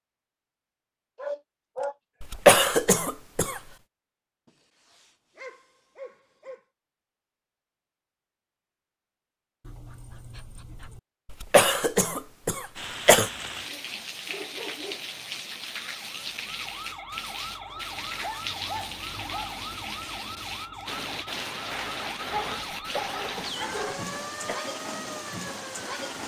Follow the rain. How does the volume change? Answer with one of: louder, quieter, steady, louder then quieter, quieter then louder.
steady.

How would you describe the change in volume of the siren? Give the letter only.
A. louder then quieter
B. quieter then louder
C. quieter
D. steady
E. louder
D.